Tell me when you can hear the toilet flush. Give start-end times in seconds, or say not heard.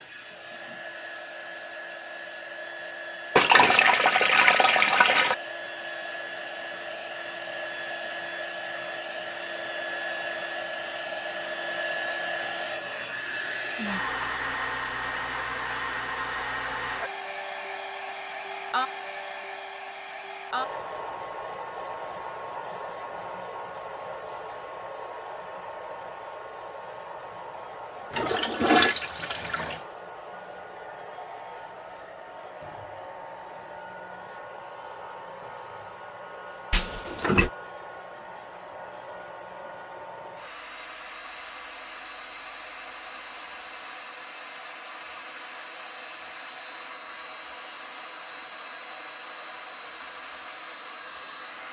3.4-5.3, 28.1-29.8, 36.7-37.5.